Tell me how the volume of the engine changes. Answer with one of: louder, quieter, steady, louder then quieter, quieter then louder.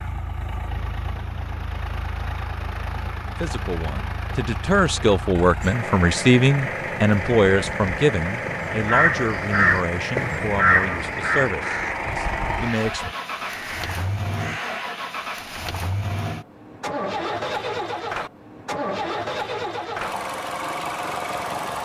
louder.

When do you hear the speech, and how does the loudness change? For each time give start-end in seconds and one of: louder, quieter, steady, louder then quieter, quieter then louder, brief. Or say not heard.
3.4-13.1 quieter.